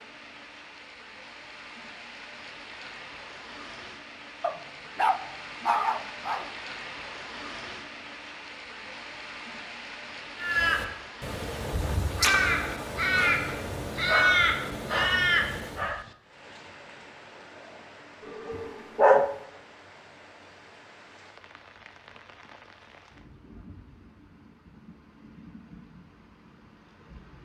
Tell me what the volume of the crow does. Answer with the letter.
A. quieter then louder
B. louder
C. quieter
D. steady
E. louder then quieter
B.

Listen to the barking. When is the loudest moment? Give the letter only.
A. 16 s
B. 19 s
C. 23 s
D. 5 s
B.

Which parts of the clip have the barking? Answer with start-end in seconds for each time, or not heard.
4.4-6.5, 14.1-16.1, 18.6-19.4.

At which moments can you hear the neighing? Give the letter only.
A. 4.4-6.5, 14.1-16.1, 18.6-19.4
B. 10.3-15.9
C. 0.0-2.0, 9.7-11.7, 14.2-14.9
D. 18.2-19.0
D.